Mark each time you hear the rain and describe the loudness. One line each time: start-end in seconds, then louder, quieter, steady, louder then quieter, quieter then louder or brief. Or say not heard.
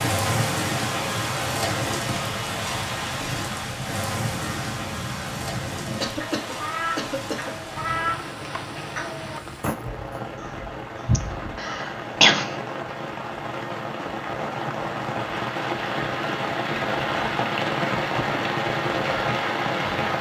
0.0-20.1 quieter then louder.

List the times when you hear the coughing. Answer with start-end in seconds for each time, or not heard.
6.0-7.5, 11.2-12.6.